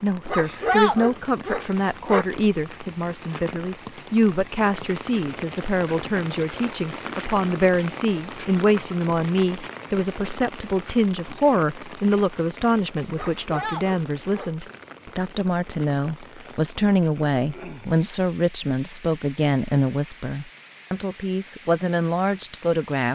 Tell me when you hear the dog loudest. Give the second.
1 s.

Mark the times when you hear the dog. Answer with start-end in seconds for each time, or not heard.
0.2-2.2, 13.2-14.6.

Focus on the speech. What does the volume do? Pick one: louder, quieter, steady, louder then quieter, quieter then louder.
steady.